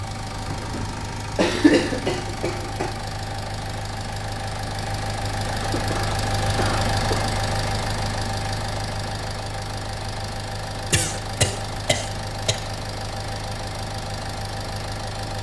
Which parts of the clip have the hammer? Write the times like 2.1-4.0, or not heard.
not heard.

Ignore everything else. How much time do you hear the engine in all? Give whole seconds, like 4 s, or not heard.
15 s.